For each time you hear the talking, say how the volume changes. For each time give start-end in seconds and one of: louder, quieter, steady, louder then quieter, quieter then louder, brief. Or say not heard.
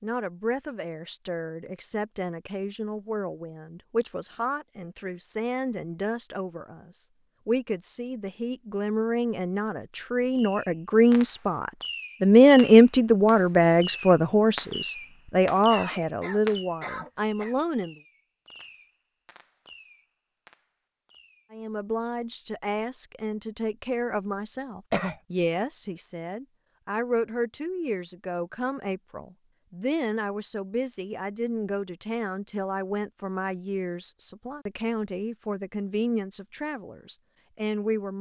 0.0-18.0 louder then quieter
21.5-38.1 steady.